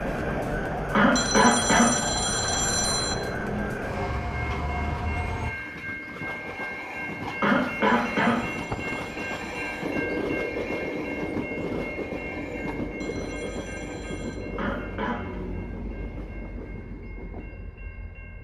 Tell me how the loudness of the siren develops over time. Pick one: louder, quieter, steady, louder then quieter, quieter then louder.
steady.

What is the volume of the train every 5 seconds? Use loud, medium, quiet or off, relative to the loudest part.
medium, loud, loud, medium.